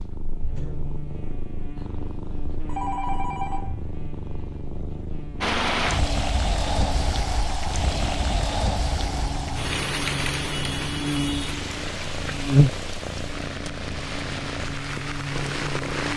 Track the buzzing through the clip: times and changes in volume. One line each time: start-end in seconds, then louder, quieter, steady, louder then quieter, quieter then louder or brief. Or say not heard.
0.0-16.1 louder then quieter.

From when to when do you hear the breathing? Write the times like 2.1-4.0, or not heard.
not heard.